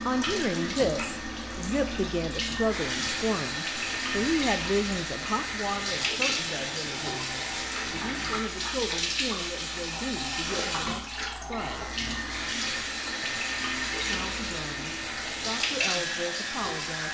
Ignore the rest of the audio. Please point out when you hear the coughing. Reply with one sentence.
The coughing can't be heard in this clip.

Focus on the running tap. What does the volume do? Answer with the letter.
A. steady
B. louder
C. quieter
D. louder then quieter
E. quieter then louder
A.